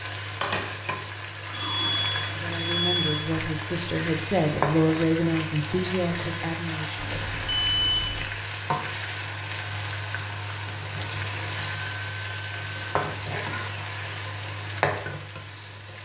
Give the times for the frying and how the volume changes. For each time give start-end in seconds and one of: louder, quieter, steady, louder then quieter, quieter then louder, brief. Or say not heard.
0.0-16.0 steady.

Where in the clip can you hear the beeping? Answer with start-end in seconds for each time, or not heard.
1.4-3.0, 7.0-8.2, 11.6-13.2.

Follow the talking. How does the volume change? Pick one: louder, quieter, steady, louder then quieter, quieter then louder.
louder then quieter.